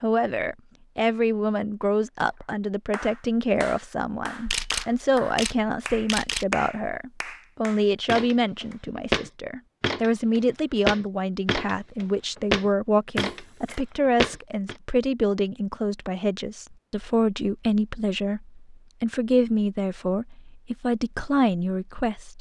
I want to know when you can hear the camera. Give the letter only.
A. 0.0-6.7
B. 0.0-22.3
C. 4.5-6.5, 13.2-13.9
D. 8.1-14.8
C.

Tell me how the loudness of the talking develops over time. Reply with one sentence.
The loudness of the talking stays about the same.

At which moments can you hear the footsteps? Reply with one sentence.
You can hear the footsteps from 8.1 to 14.8 s.